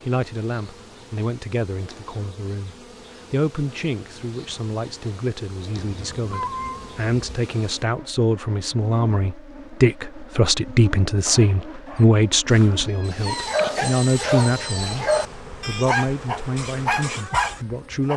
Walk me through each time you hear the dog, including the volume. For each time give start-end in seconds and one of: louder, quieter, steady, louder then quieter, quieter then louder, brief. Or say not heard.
11.8-18.1 louder.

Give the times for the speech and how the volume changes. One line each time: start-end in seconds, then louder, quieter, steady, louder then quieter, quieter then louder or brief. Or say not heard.
0.1-15.1 louder
15.7-18.1 brief.